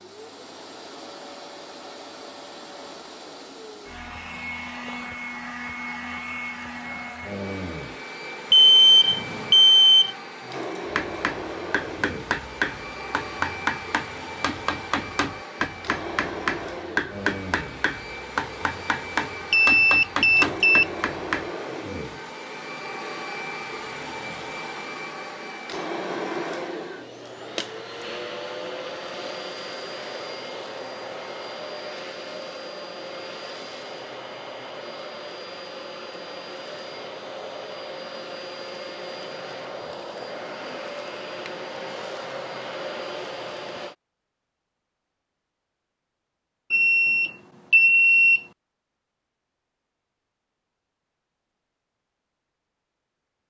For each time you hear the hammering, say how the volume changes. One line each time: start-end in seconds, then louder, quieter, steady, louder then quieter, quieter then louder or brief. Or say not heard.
10.9-21.5 steady.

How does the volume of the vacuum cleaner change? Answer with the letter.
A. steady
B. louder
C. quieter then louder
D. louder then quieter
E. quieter
A.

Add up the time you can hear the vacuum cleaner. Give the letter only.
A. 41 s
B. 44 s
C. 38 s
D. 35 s
B.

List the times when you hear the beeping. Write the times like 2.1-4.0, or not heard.
8.5-10.2, 19.5-20.9, 46.7-48.4.